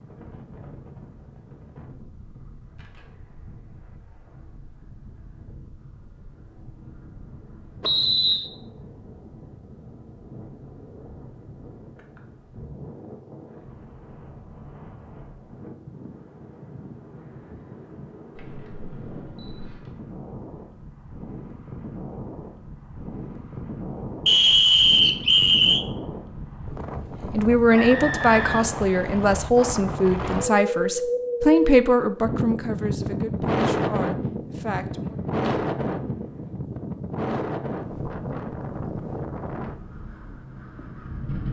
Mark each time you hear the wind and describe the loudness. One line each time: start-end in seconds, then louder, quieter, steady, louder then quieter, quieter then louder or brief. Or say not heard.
0.0-41.4 louder.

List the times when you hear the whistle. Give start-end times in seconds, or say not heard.
7.8-8.5, 24.2-25.9, 27.8-29.5.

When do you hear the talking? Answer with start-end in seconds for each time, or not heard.
27.3-35.1.